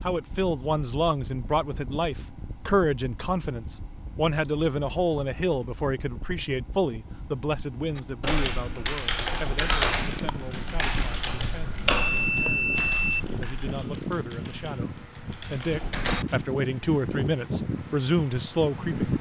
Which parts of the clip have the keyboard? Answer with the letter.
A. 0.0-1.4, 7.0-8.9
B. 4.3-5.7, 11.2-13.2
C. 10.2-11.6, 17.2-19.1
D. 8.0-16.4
D.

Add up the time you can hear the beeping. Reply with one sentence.
The beeping can be heard for 3 seconds in total.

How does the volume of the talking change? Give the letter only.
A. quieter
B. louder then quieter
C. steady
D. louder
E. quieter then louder
E.